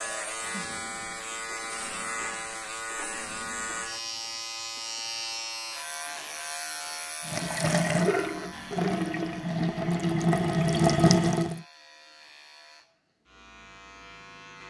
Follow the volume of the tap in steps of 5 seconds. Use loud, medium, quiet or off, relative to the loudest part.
off, medium, loud.